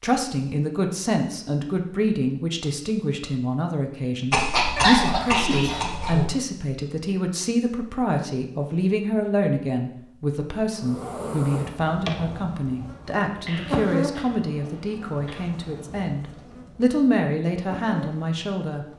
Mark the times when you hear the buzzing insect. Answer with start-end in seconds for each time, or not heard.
10.8-18.9.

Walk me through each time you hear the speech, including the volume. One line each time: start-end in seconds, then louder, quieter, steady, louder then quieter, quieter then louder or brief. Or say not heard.
0.0-18.9 steady.